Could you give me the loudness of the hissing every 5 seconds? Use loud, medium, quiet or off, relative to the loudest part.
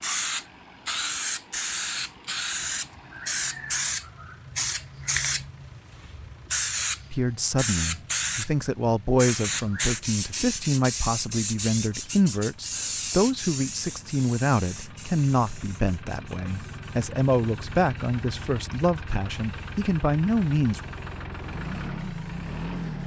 loud, loud, loud, quiet, quiet.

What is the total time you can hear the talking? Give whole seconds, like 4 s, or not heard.
14 s.